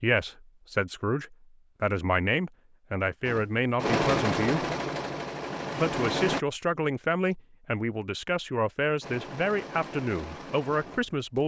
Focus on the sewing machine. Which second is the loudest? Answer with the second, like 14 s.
4 s.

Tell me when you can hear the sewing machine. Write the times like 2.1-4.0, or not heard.
3.2-6.5, 9.0-11.4.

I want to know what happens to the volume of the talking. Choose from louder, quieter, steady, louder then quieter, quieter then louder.
steady.